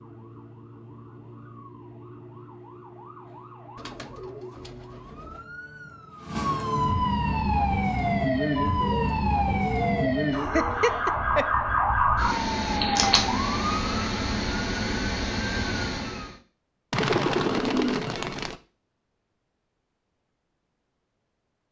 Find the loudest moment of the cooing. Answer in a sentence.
The volume of the cooing peaks at 17 seconds.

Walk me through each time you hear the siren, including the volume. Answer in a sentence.
The siren can be heard from 0.0 to 16.4 s, getting louder.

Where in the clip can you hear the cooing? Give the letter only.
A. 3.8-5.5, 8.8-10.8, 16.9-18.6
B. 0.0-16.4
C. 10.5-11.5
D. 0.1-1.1
A.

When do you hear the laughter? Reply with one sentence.
You can hear the laughter from 10.5 to 11.5 s.